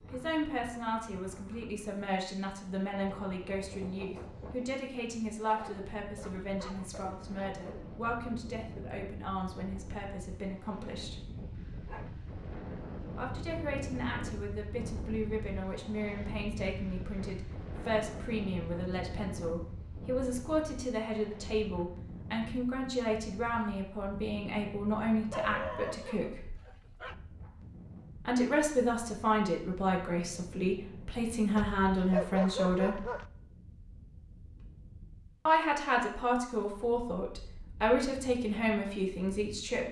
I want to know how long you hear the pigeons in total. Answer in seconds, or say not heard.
not heard.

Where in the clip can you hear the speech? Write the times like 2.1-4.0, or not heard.
0.1-11.2, 13.2-26.6, 28.2-33.1, 35.5-39.8.